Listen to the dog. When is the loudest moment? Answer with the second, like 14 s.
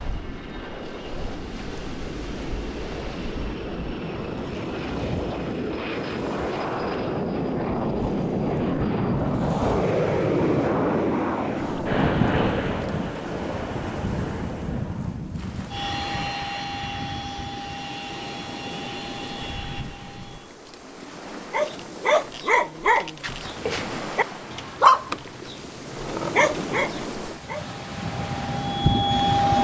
25 s.